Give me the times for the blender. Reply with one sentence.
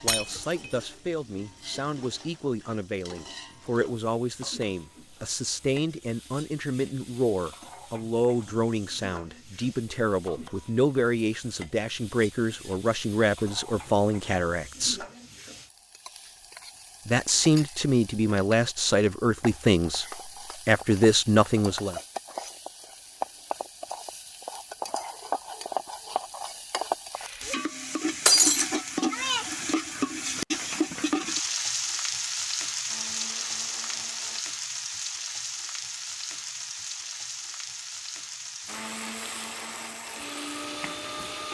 You can hear the blender from 32.9 to 34.5 s and from 38.6 to 41.4 s.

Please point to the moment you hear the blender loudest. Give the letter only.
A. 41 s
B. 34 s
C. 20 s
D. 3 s
A.